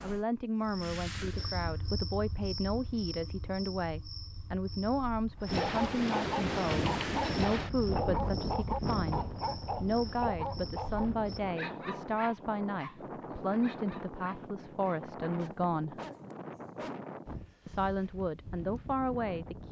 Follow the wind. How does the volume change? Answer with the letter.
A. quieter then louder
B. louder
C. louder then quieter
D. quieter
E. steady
D.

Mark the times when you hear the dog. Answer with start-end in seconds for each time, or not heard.
5.4-16.9.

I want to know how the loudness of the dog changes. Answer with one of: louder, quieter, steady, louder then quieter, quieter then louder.
quieter.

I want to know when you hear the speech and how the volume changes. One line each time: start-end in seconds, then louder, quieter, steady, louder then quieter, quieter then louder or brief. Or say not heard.
0.0-15.9 steady
17.6-19.6 brief.